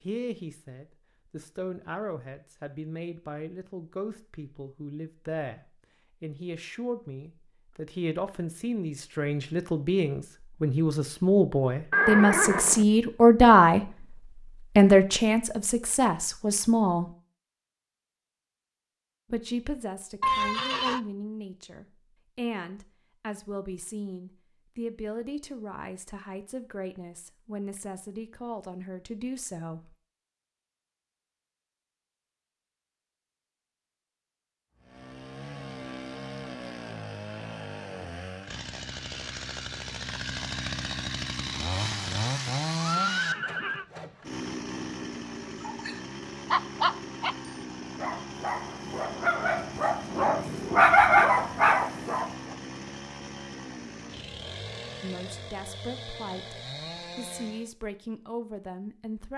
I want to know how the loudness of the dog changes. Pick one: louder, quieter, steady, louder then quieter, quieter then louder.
quieter then louder.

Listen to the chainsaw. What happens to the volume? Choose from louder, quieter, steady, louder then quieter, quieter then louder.
louder then quieter.